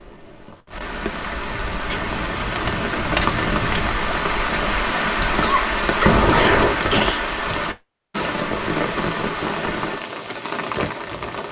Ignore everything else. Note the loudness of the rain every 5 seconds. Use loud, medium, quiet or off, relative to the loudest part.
loud, loud, medium.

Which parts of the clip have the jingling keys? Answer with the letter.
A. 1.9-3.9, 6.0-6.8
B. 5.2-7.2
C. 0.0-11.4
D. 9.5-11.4
A.